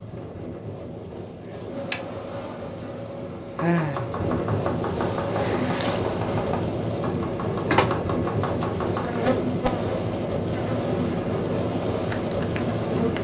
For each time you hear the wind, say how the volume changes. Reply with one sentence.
You can hear the wind from 0.0 to 13.1 s, getting louder.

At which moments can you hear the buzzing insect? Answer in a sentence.
The buzzing insect can be heard from 1.7 to 13.1 s.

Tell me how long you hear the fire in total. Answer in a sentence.
The fire can't be heard in this clip.